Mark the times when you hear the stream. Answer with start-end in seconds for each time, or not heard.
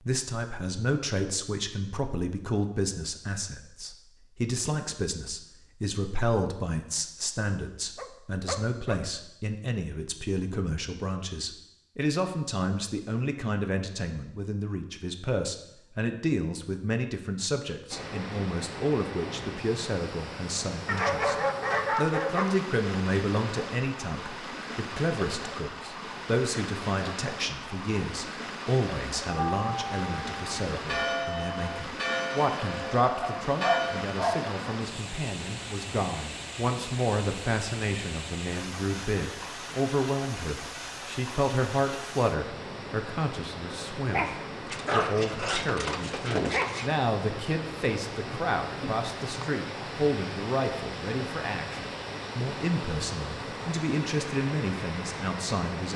17.9-55.9.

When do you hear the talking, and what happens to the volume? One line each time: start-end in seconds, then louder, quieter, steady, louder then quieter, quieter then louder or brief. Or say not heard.
0.1-21.4 steady
21.9-55.9 steady.